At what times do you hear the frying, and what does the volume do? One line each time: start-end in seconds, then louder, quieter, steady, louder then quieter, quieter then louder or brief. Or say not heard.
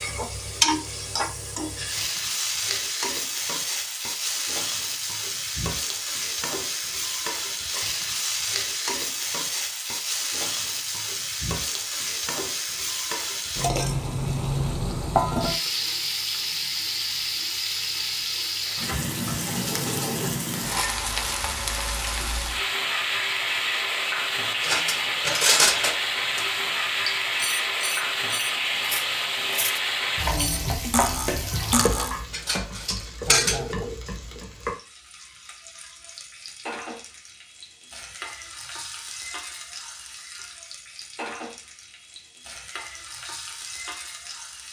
0.0-44.6 quieter.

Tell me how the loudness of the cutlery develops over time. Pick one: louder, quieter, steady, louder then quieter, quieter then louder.
quieter then louder.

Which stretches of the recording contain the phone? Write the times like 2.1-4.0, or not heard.
33.2-34.5.